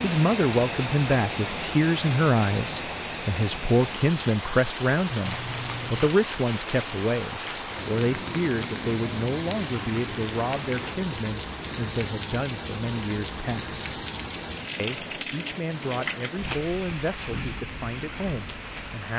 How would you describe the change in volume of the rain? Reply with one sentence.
The loudness of the rain stays about the same.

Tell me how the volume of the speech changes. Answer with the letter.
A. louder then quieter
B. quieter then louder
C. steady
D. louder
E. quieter
E.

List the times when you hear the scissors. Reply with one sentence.
The scissors can be heard from 5.2 to 6.1 s.